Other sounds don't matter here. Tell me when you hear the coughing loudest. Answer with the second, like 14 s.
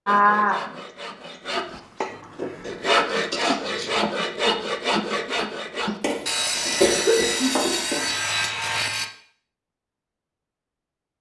7 s.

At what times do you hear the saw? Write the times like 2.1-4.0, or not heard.
0.1-9.1.